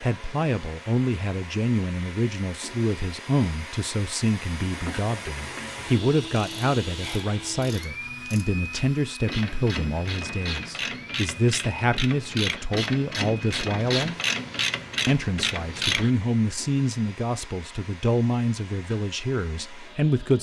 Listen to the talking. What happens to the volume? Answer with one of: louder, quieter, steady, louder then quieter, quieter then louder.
steady.